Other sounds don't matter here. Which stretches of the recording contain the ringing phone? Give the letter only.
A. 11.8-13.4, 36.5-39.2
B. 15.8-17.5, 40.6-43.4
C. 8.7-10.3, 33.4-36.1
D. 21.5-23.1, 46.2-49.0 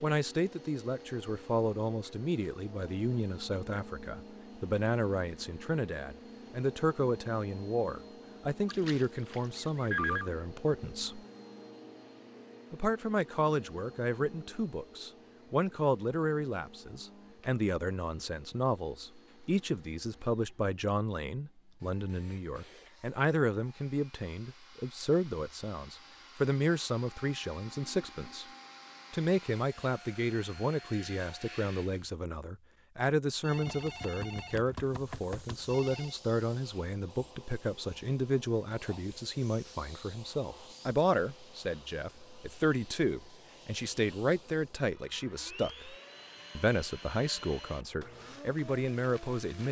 C.